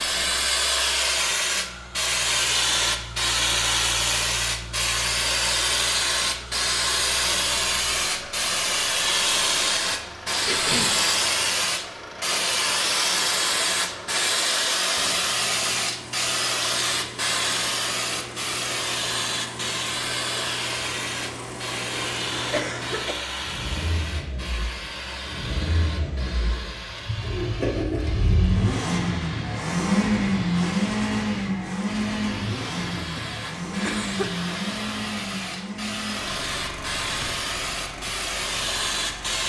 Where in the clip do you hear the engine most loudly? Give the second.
30 s.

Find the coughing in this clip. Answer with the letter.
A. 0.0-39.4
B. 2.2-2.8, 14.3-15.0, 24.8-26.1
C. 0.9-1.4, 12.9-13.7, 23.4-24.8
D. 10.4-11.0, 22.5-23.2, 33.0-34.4
D.